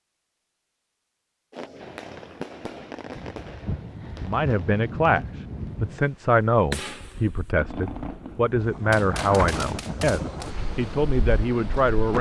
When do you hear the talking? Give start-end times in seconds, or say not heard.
4.2-12.1.